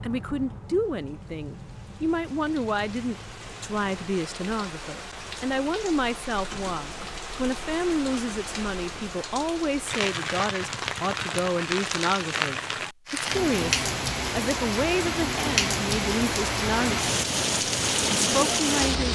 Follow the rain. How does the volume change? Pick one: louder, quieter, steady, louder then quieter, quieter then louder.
louder.